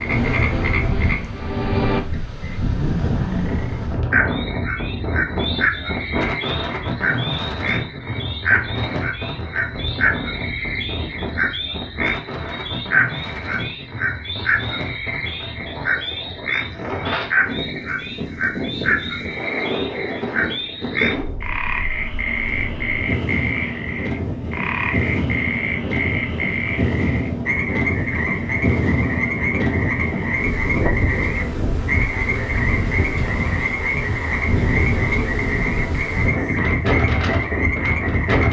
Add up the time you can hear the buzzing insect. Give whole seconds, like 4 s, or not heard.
not heard.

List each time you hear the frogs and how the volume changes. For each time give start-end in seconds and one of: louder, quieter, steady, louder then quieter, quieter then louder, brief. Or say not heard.
0.0-38.4 steady.